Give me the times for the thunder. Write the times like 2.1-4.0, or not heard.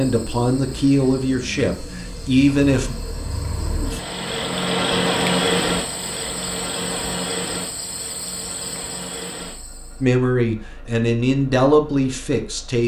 not heard.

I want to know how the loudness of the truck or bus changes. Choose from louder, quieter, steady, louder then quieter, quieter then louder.
louder then quieter.